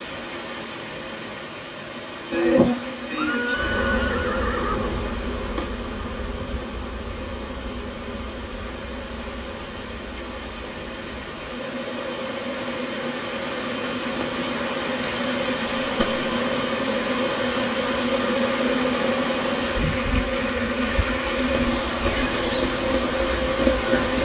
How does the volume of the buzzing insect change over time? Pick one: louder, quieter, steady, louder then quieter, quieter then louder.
quieter then louder.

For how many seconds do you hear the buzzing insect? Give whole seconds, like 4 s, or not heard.
22 s.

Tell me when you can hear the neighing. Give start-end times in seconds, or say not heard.
3.1-5.1, 15.8-16.2.